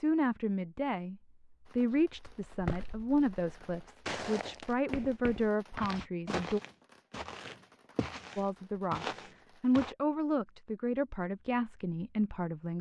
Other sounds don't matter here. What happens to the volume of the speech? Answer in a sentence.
The loudness of the speech stays about the same.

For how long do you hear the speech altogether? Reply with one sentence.
You can hear the speech for 11 seconds altogether.